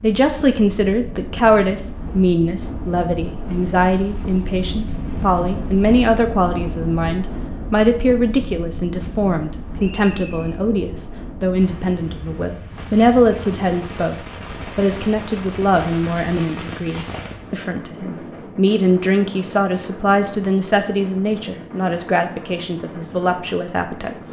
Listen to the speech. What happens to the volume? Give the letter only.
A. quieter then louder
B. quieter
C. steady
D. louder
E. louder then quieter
C.